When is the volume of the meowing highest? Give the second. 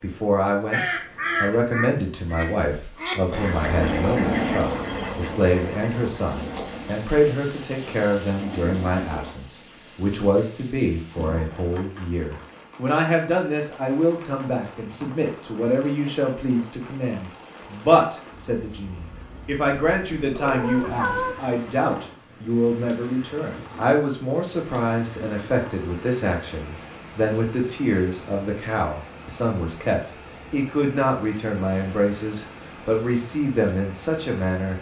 21 s.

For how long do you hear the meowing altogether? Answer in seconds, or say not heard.
2 s.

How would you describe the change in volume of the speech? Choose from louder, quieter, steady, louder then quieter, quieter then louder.
steady.